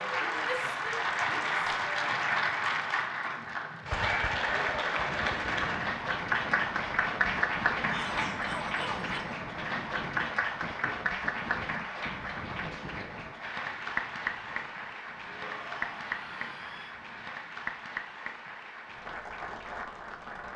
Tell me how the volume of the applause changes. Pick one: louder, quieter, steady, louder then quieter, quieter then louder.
quieter.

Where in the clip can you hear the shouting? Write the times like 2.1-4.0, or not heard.
0.4-1.6, 7.9-9.3, 15.2-16.9.